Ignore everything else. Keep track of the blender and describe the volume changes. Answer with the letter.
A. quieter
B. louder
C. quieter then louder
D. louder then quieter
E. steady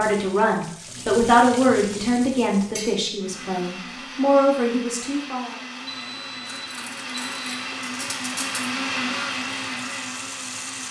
B.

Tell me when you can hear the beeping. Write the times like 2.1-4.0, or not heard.
5.8-7.5.